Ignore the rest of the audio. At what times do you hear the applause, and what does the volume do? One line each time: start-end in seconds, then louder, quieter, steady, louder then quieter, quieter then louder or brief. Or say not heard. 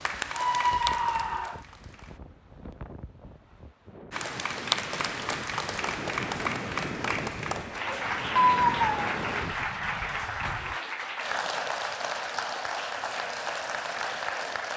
0.0-2.2 brief
4.1-14.7 steady.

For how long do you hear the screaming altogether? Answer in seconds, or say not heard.
2 s.